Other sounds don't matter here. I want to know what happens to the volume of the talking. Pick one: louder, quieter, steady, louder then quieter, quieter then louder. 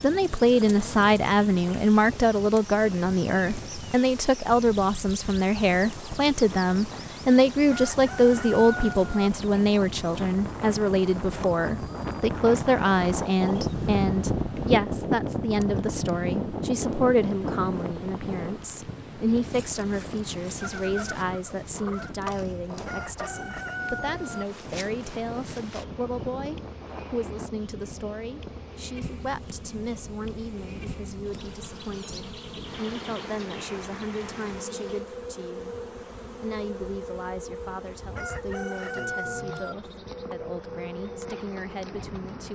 quieter.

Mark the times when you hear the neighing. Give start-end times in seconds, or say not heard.
20.6-22.1.